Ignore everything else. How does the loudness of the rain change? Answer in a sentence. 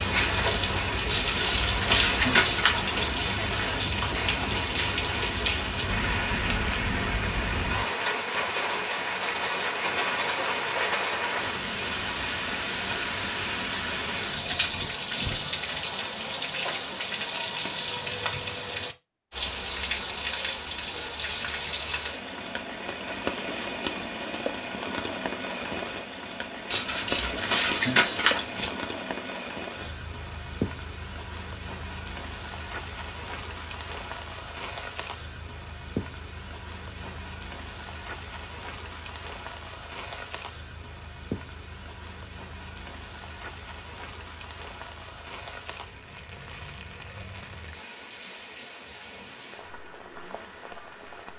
The volume of the rain goes down.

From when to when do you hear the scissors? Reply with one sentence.
You can hear the scissors from 1.1 to 3.1 s and from 26.7 to 28.7 s.